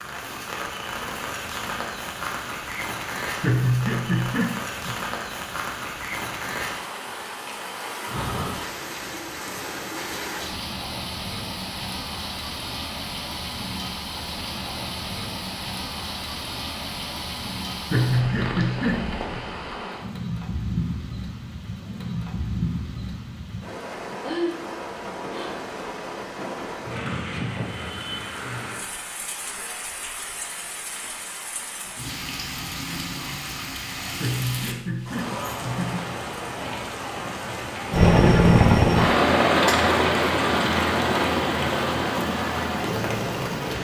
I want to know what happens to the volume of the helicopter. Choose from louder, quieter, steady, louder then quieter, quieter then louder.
quieter.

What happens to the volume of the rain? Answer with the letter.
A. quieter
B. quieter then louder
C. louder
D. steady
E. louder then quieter
D.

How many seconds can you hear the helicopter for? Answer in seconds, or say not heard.
6 s.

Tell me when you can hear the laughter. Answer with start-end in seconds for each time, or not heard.
3.4-5.0, 17.9-19.4, 34.2-36.0.